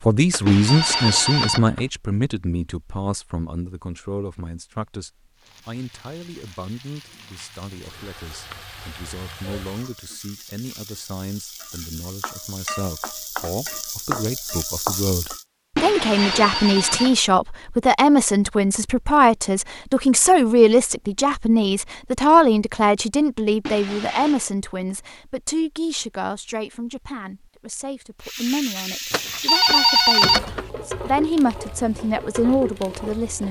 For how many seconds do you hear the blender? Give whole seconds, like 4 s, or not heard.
not heard.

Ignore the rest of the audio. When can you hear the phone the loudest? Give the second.
30 s.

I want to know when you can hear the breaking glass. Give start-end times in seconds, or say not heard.
0.5-1.6, 15.8-17.2, 23.6-24.5.